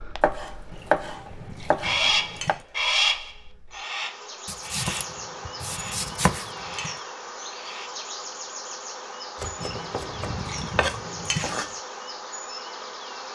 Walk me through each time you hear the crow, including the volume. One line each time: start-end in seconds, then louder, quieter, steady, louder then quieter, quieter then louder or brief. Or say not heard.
1.8-7.9 quieter.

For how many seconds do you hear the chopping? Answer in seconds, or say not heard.
7 s.